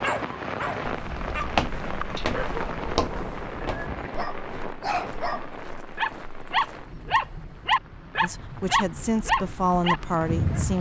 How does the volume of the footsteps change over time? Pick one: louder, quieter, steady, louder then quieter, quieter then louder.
quieter.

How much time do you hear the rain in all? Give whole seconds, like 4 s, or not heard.
11 s.